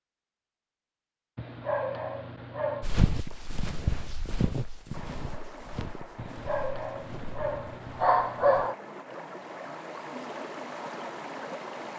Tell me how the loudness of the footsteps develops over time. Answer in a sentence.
The volume of the footsteps goes down.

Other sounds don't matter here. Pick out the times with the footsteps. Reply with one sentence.
The footsteps can be heard from 2.8 to 8.7 s.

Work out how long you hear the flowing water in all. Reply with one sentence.
The flowing water can be heard for 7 seconds in total.